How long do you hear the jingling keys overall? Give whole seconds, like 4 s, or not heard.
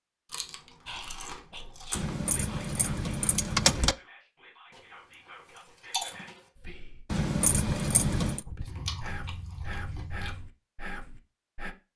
3 s.